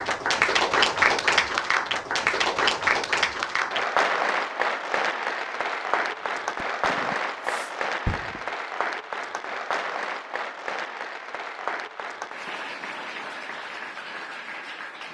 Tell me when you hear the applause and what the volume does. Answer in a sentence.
You can hear the applause from 0.0 to 15.0 s, getting quieter.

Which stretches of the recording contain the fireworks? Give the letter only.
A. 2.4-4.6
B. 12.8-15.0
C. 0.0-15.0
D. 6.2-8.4
D.